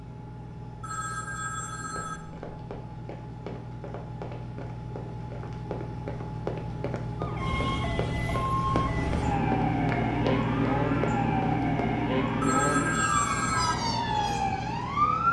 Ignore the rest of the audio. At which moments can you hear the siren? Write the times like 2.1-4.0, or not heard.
7.2-15.2.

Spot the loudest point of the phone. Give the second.
13 s.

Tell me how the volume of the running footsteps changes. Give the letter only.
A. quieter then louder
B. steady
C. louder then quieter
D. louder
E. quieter
D.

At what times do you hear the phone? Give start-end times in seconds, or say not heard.
0.8-2.2, 12.4-13.8.